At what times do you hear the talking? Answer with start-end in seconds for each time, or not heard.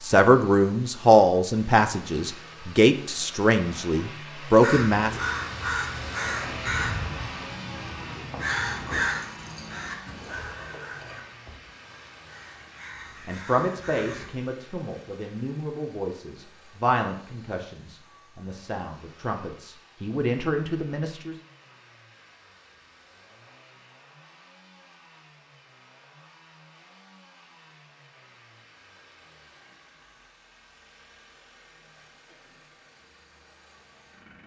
0.0-5.2, 13.2-21.4.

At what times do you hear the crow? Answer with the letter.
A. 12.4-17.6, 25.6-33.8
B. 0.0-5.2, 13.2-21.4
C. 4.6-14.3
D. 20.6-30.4
C.